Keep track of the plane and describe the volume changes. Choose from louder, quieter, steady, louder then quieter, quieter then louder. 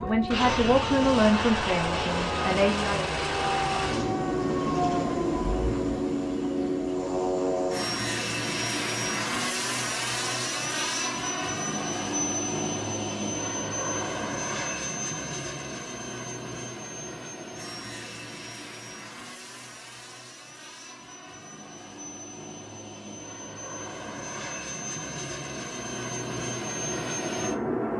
quieter then louder.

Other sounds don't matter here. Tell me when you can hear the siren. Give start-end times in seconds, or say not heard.
0.0-6.1.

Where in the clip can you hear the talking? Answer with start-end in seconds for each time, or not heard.
0.0-3.1.